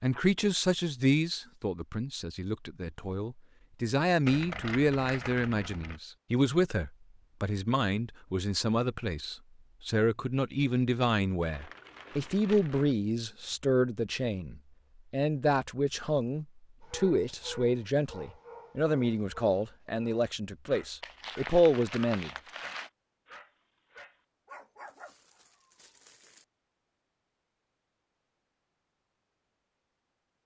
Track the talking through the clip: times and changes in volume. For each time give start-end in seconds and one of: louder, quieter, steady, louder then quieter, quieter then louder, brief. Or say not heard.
0.0-22.3 steady.